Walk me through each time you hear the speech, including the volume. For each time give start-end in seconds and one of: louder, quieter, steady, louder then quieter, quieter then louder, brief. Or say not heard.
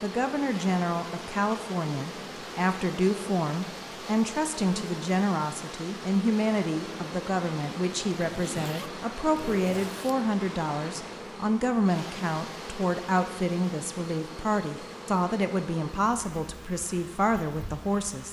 0.0-18.2 steady.